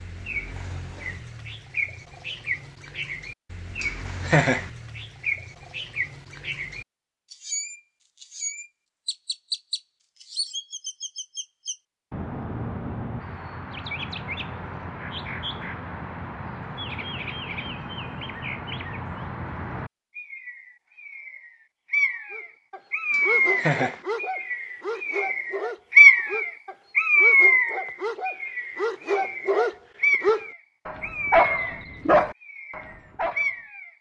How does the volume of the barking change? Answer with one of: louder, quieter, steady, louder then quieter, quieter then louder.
louder.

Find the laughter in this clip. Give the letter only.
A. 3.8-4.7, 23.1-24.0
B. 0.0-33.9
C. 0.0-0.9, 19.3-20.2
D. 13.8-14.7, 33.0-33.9
A.